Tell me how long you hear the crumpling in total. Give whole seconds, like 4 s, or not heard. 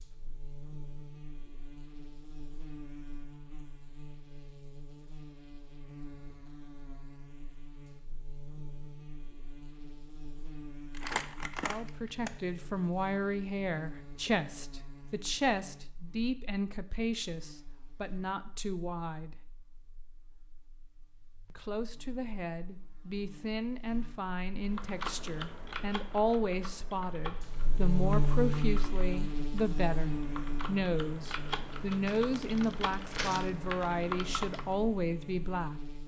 3 s.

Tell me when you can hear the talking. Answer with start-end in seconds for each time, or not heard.
11.6-19.4, 21.5-35.8.